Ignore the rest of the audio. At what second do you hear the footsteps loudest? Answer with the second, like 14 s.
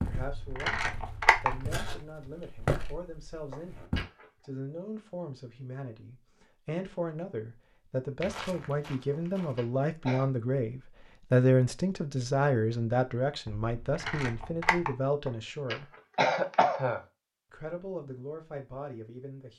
3 s.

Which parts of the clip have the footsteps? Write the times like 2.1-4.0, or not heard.
0.0-4.0, 8.2-9.7.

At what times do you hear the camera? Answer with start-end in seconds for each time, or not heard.
0.1-2.0, 13.4-14.9.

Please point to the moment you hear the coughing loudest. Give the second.
16 s.